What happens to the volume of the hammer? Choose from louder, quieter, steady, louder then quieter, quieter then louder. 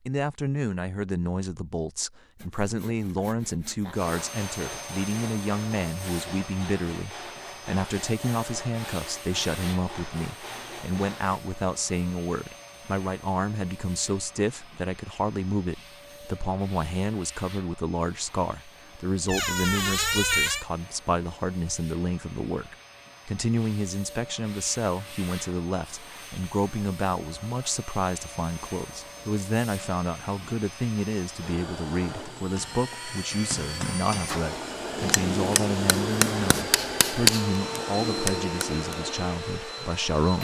louder.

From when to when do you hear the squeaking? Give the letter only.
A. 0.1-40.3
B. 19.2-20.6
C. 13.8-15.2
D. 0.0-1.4
B.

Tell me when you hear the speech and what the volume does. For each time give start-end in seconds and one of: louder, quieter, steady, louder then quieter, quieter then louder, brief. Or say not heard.
0.1-40.3 steady.